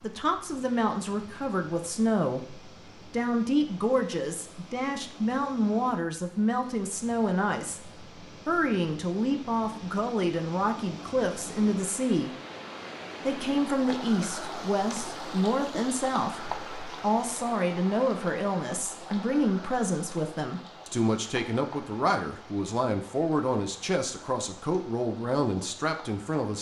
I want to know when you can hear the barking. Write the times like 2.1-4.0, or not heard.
not heard.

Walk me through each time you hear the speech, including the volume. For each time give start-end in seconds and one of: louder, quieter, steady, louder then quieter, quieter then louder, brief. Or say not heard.
0.0-12.3 steady
13.2-26.5 steady.